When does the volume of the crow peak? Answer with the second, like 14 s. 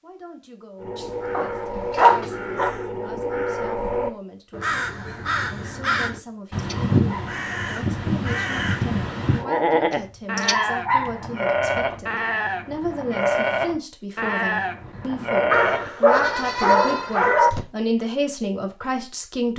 7 s.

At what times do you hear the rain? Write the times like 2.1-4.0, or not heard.
not heard.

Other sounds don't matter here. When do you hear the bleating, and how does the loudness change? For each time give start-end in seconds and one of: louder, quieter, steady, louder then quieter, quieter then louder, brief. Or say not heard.
9.3-17.2 steady.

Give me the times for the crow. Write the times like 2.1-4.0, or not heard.
0.8-9.4.